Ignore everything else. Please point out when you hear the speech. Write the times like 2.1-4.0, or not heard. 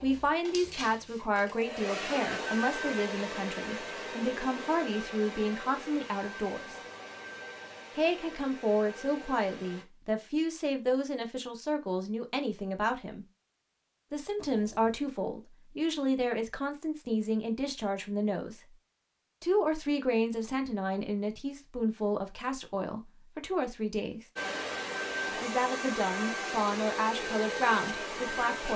0.0-6.8, 8.0-13.2, 14.1-18.6, 19.4-24.2, 25.4-28.7.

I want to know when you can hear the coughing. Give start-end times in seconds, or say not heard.
not heard.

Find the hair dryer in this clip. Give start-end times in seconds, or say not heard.
0.0-9.8, 24.4-28.7.